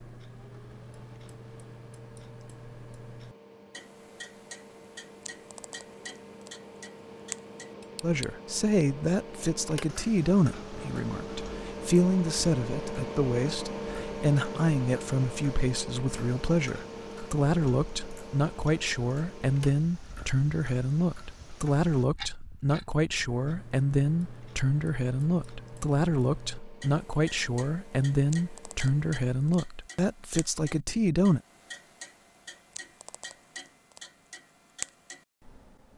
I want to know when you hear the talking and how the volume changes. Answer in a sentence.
You can hear the talking from 8.0 to 31.4 s, at a steady volume.